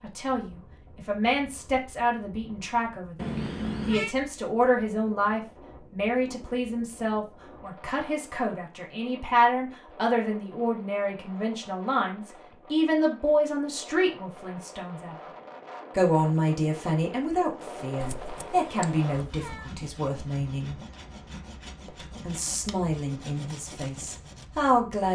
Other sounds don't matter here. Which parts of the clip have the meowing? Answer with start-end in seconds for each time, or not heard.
3.1-4.2, 18.0-19.7.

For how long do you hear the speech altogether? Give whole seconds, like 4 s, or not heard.
23 s.